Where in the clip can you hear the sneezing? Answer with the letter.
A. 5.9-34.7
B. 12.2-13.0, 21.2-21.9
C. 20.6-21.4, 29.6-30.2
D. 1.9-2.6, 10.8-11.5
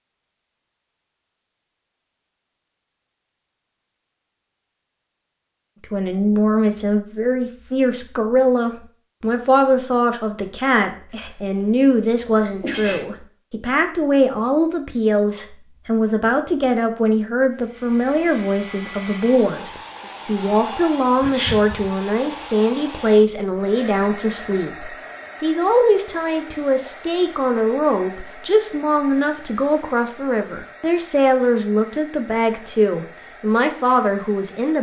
B.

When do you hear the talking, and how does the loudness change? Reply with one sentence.
You can hear the talking from 5.9 to 34.7 s, at a steady volume.